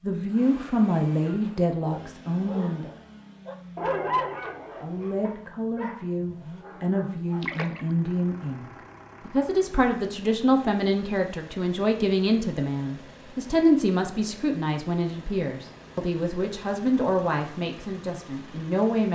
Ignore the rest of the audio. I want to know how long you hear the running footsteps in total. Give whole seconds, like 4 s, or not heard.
not heard.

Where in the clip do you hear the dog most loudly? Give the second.
4 s.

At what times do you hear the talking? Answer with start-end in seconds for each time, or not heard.
0.0-2.9, 4.8-8.7, 9.2-19.1.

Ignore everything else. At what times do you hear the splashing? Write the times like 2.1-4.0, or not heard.
7.4-8.0.